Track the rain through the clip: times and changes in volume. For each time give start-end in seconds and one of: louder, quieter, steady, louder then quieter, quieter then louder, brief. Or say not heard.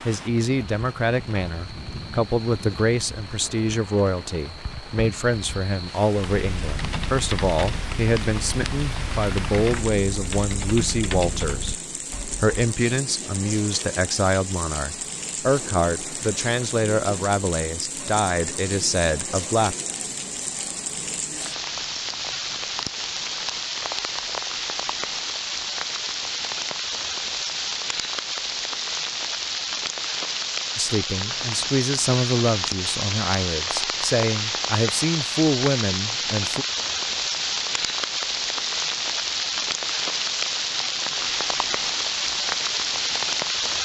0.0-43.7 louder.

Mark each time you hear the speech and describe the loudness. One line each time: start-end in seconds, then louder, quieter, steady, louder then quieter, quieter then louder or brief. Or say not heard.
0.1-19.8 steady
30.8-36.6 steady.